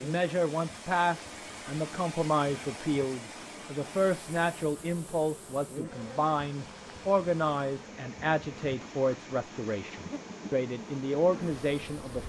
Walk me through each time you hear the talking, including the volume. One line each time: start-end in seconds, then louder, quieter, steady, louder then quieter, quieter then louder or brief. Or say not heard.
0.0-12.2 steady.